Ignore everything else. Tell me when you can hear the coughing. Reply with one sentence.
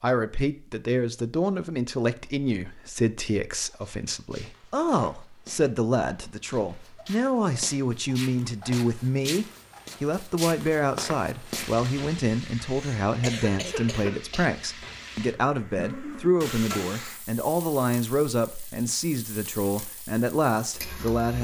You can hear the coughing from 12.7 to 14.4 s.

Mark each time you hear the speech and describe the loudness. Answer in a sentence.
You can hear the speech from 0.0 to 21.3 s, at a steady volume.